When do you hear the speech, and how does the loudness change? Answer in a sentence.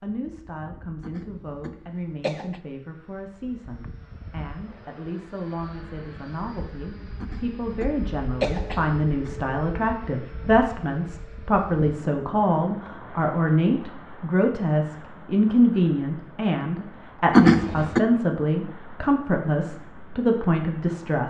You can hear the speech from 0.0 to 21.2 s, getting louder.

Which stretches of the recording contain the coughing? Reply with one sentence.
The coughing can be heard from 1.0 to 2.6 s, from 7.2 to 9.3 s and from 17.3 to 18.1 s.